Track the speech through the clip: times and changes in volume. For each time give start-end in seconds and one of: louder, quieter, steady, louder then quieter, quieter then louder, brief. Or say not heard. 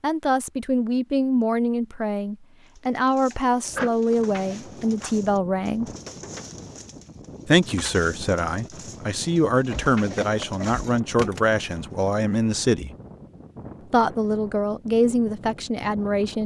0.0-5.9 steady
7.5-12.9 steady
13.9-16.4 brief.